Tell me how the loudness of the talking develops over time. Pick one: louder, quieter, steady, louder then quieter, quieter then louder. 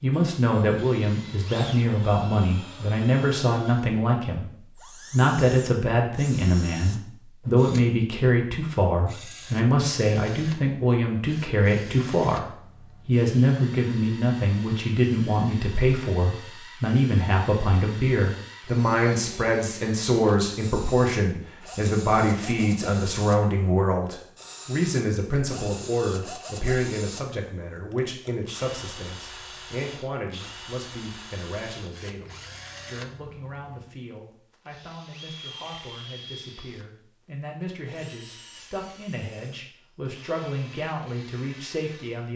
quieter.